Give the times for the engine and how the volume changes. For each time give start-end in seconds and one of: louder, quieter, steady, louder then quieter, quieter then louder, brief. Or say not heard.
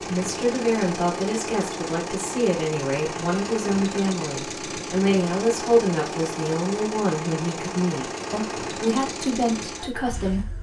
0.0-10.5 steady.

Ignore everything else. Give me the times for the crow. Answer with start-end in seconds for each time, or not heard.
not heard.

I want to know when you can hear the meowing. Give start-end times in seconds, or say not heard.
not heard.